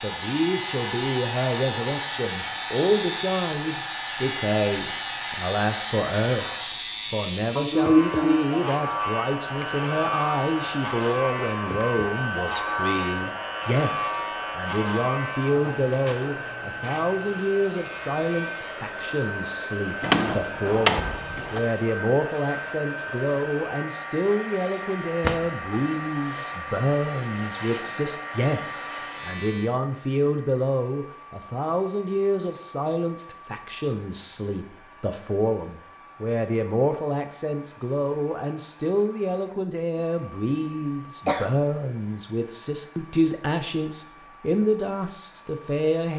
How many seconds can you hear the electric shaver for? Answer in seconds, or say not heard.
30 s.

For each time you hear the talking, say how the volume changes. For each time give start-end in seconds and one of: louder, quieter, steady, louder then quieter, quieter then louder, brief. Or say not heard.
0.0-46.1 steady.